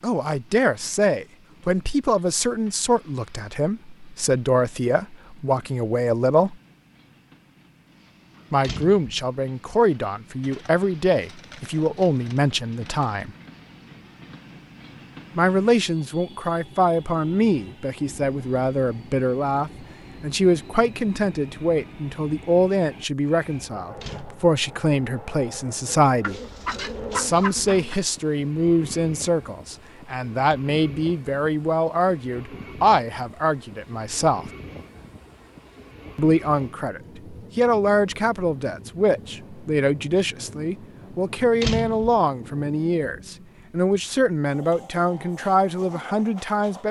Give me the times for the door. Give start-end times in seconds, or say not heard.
8.6-9.2, 24.0-24.4, 41.6-42.2.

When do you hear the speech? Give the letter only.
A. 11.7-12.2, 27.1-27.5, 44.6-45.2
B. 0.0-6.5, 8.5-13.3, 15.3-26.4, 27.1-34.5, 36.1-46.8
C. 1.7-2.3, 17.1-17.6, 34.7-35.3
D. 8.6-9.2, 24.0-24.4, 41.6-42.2
B.